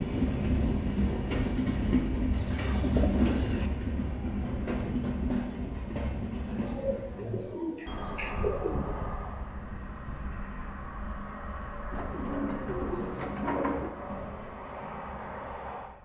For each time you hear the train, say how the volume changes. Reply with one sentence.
The train can be heard from 0.0 to 16.0 s, getting quieter.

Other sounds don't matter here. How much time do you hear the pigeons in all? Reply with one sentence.
The pigeons can be heard for 6 seconds in total.